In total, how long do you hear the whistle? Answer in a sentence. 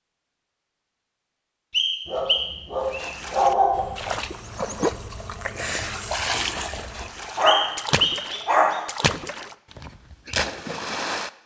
You can hear the whistle for 2 seconds altogether.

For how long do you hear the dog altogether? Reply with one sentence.
You can hear the dog for 3 seconds altogether.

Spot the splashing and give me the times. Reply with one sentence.
The splashing can be heard from 2.8 to 11.3 s.